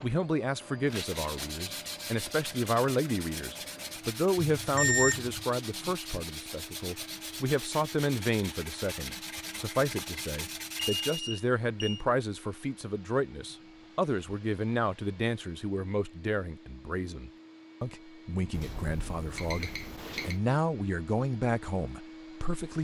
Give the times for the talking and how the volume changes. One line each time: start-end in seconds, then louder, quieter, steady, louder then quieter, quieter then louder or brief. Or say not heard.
0.0-22.7 steady.